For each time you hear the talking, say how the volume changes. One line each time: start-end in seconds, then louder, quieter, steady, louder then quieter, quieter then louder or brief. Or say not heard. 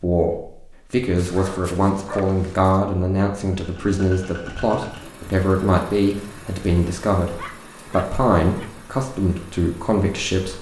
0.0-10.5 steady.